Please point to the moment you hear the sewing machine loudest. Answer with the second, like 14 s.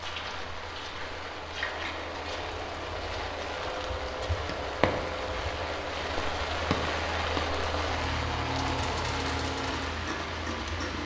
9 s.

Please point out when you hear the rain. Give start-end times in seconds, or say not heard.
0.0-11.0.